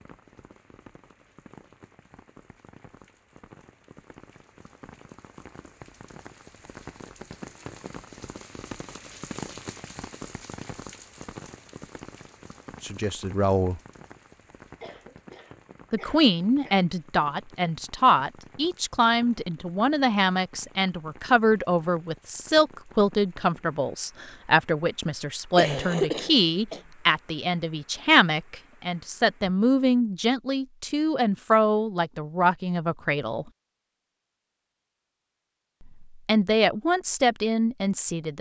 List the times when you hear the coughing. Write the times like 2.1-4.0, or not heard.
14.8-16.8, 25.6-26.8.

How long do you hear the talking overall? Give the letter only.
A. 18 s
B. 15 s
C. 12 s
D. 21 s
D.